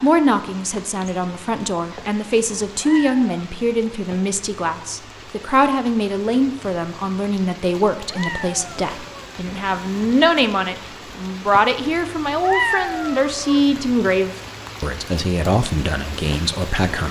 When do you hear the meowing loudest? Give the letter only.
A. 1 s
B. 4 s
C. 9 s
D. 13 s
D.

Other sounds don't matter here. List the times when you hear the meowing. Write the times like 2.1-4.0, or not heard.
2.8-3.5, 8.1-9.3, 12.4-13.7.